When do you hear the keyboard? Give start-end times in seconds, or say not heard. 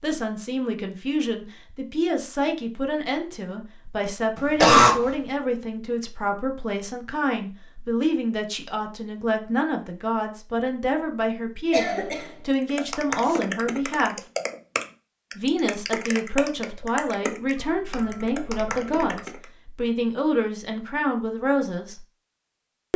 12.6-19.4.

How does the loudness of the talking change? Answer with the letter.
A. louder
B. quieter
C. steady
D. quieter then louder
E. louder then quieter
C.